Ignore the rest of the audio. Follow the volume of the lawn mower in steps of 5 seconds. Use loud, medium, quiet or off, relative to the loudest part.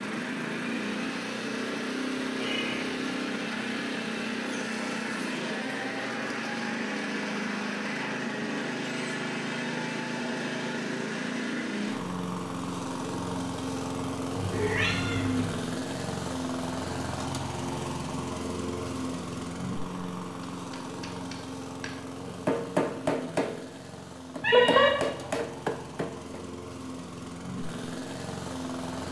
loud, loud, loud, loud, medium, medium.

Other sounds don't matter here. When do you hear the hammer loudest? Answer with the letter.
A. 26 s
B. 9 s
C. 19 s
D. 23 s
D.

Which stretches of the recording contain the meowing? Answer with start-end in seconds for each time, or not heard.
2.1-3.0, 14.3-15.6, 24.4-24.9.